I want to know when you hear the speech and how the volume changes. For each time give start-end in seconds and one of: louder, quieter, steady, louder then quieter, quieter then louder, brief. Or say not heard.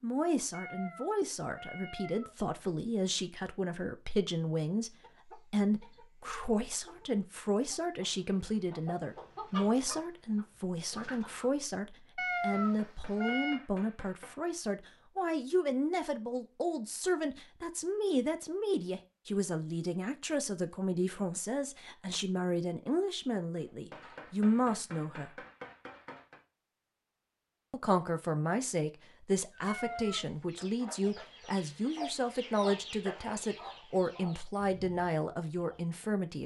0.0-25.4 steady
27.7-36.4 steady.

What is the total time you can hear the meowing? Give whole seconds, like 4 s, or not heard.
4 s.